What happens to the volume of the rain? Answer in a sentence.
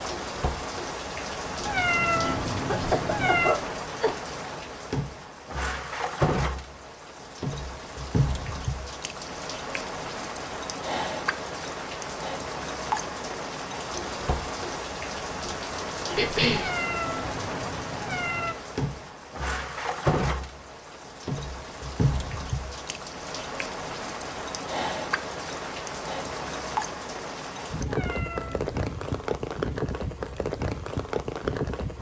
The volume of the rain stays about the same.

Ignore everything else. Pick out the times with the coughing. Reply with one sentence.
The coughing can be heard from 2.6 to 4.2 s and from 16.1 to 16.7 s.